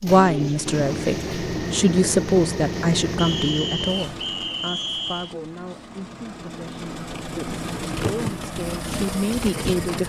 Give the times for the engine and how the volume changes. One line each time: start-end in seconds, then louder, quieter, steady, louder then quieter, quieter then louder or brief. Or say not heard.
0.0-10.0 quieter then louder.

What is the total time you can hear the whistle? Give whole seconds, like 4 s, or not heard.
2 s.